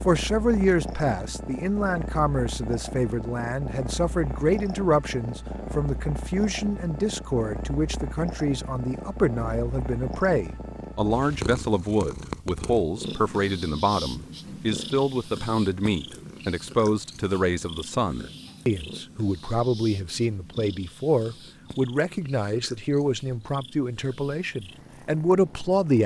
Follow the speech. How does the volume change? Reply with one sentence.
The loudness of the speech stays about the same.